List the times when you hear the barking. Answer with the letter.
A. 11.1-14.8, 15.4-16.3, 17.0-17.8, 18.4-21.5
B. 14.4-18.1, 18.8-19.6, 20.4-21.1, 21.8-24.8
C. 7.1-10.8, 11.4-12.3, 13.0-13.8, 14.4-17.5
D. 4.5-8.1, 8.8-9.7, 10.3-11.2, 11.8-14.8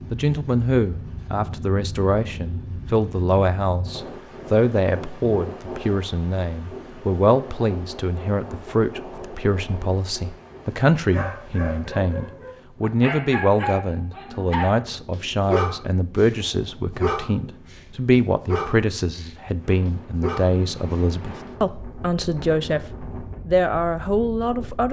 A.